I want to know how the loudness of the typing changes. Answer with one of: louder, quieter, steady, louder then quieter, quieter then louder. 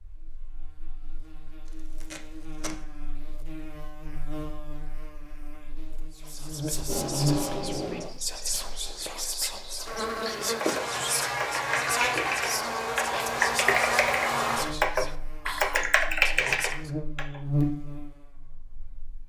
louder.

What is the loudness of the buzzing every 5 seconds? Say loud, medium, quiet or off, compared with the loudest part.
quiet, medium, loud, medium.